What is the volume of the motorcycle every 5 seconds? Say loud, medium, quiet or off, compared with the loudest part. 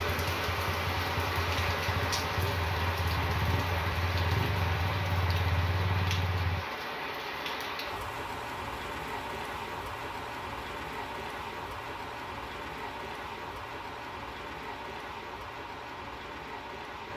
loud, loud, off, off.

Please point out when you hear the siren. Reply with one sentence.
The siren can't be heard in this clip.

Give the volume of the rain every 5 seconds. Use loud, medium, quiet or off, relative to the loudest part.
loud, loud, medium, medium.